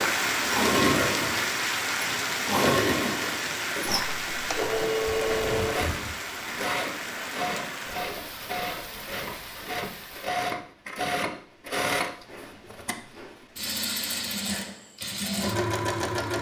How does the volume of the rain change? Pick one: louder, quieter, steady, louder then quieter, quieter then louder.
quieter.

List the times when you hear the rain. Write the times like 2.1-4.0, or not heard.
0.0-10.3.